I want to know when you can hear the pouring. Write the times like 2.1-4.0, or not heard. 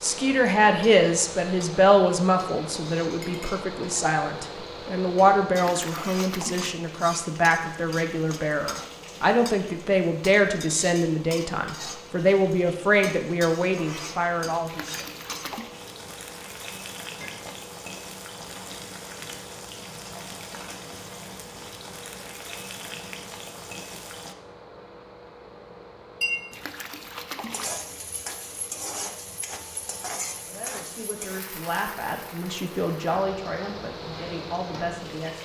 5.5-6.8, 14.7-15.8, 26.5-27.7.